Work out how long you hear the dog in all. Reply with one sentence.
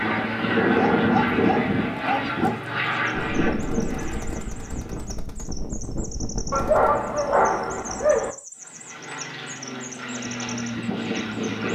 The dog can be heard for 4 seconds in total.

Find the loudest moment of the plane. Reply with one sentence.
The volume of the plane peaks at 1 second.